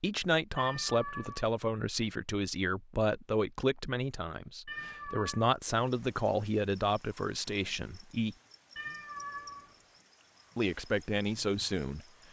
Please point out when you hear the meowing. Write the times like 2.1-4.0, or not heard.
0.6-1.5, 4.7-5.5, 8.8-9.8.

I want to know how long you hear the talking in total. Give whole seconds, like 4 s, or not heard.
10 s.